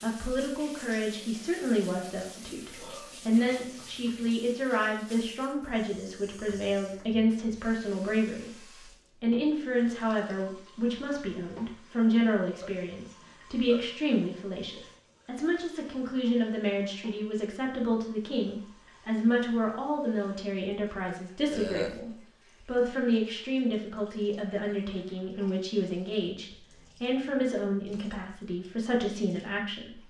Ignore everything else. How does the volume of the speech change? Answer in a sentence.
The volume of the speech stays about the same.